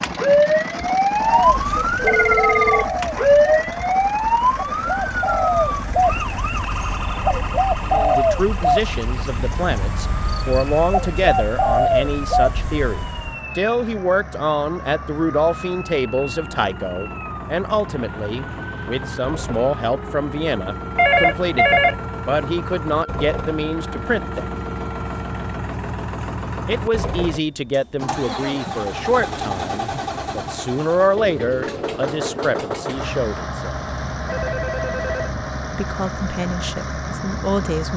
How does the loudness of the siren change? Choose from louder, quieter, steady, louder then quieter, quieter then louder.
quieter.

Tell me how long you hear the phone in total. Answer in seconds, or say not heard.
3 s.